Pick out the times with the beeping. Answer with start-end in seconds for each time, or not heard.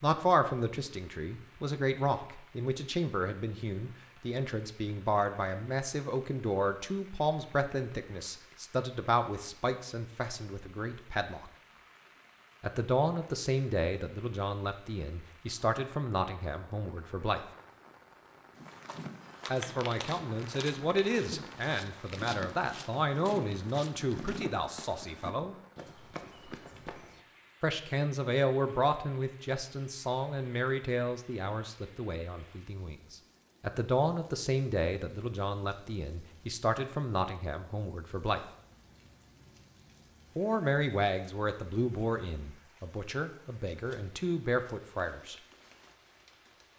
not heard.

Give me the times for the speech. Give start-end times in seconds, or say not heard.
0.0-11.5, 12.6-17.4, 19.5-25.6, 27.6-38.4, 40.4-45.4.